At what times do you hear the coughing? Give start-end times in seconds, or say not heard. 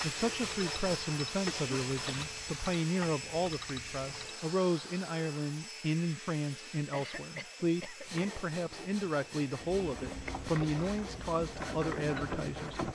1.4-2.4, 6.9-8.2.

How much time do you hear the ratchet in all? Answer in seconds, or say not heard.
8 s.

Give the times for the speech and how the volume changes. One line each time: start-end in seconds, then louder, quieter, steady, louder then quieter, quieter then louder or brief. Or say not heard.
0.0-12.9 steady.